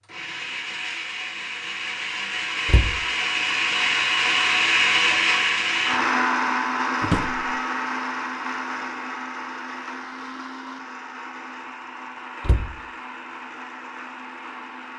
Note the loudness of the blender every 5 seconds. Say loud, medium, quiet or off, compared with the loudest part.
loud, loud, quiet.